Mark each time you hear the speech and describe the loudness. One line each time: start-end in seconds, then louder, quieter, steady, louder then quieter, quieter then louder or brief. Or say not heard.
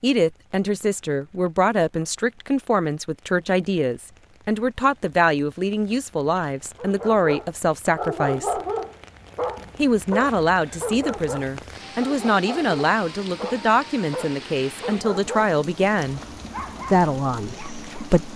0.0-8.6 steady
9.8-16.2 steady
16.9-18.3 brief.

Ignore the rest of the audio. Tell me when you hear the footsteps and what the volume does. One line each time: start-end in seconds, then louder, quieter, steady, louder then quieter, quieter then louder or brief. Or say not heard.
not heard.